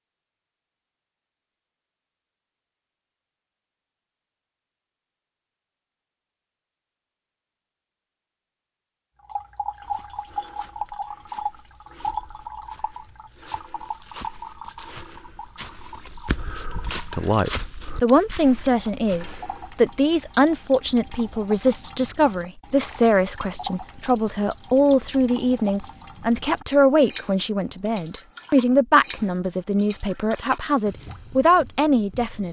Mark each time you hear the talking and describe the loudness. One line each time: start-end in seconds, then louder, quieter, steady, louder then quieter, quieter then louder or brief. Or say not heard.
16.9-32.4 steady.